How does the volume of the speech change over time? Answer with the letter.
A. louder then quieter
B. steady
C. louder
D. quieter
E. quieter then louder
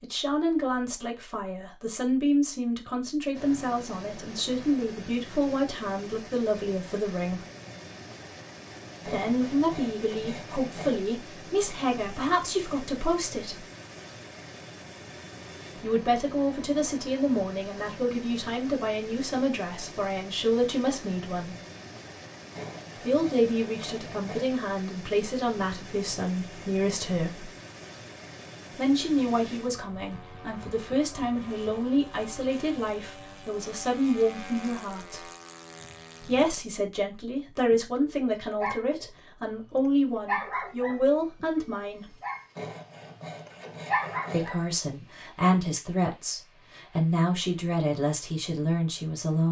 B.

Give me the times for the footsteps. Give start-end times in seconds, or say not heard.
not heard.